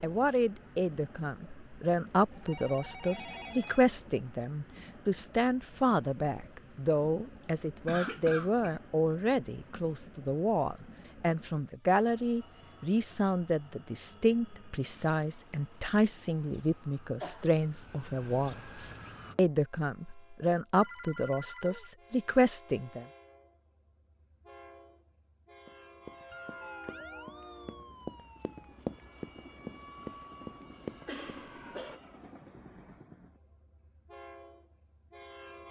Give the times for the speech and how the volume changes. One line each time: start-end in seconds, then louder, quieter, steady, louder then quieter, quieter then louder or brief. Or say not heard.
0.0-23.1 steady.